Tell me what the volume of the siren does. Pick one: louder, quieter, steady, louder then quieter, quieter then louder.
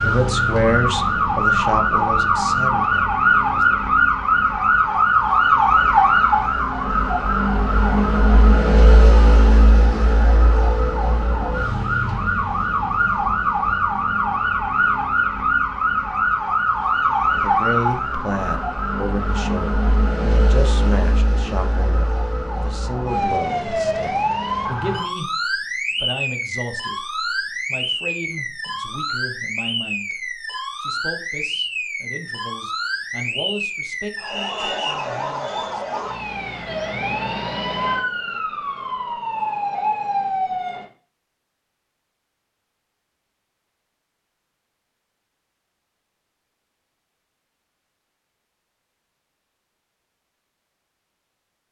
quieter.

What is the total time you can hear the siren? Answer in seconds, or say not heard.
41 s.